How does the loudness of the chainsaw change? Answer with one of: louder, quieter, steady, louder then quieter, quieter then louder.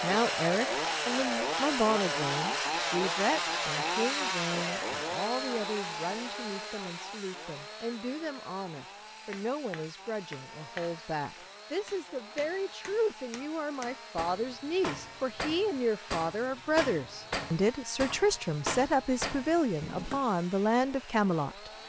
quieter.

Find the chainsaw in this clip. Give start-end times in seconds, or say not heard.
0.0-21.8.